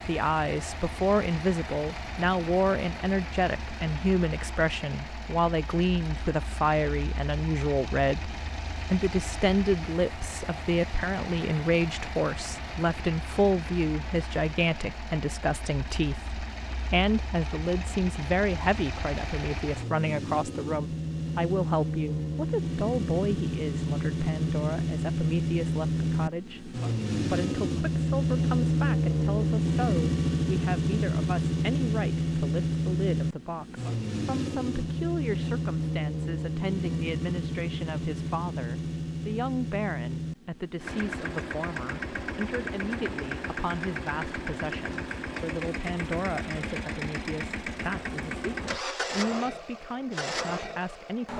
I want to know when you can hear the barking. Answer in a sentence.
You can't hear the barking here.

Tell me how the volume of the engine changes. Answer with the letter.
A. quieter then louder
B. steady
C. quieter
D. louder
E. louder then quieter
E.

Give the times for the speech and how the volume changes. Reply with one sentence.
The speech can be heard from 0.1 to 51.3 s, getting quieter.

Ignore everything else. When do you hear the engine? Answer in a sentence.
You can hear the engine from 0.0 to 51.3 s.